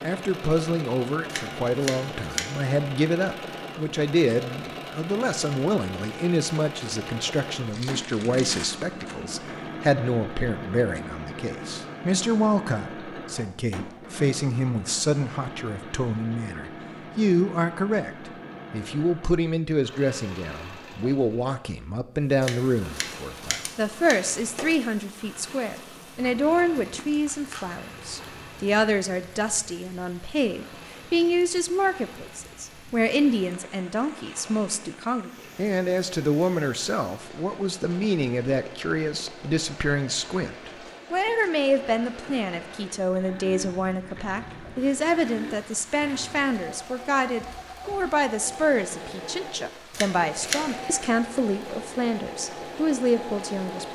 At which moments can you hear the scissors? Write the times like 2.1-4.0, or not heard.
1.3-2.5, 22.4-24.8, 49.9-50.7.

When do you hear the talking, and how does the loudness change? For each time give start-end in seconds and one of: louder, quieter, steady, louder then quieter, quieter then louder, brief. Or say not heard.
0.0-53.8 steady.